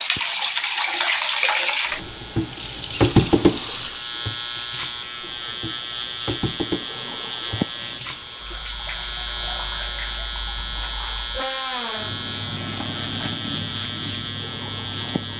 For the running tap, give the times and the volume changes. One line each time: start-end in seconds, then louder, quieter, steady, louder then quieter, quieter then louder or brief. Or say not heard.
0.0-15.3 quieter.